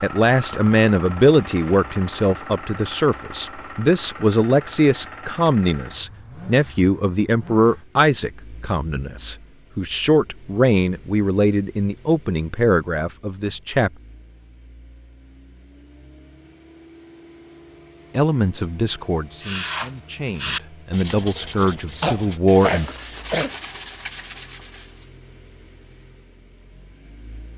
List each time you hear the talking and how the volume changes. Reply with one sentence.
You can hear the talking from 0.0 to 13.9 s, at a steady volume; and from 18.1 to 23.0 s, getting quieter then louder.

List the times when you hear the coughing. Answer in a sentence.
The coughing can be heard from 22.0 to 23.6 s.